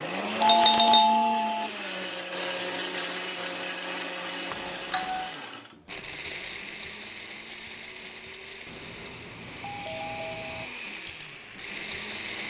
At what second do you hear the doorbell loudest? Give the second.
1 s.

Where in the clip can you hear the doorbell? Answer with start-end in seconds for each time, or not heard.
0.4-1.7, 4.5-5.3, 8.7-10.7.